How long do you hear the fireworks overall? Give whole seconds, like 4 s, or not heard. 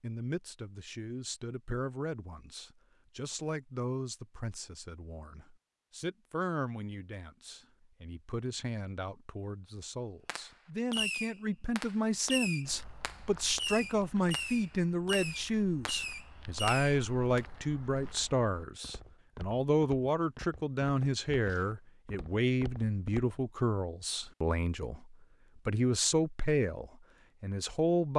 7 s.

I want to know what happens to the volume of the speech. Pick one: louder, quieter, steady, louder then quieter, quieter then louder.
louder.